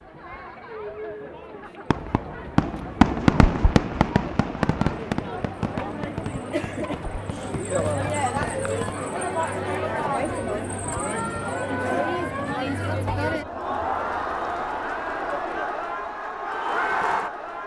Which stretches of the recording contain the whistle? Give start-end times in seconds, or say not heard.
not heard.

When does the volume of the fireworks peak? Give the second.
3 s.